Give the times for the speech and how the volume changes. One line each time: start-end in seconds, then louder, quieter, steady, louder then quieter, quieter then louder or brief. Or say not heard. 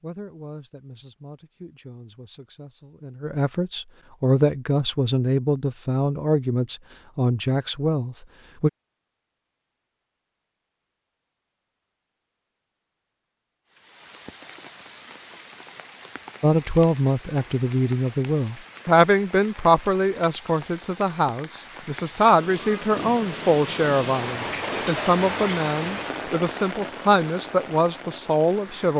0.0-8.7 louder
16.4-28.9 steady.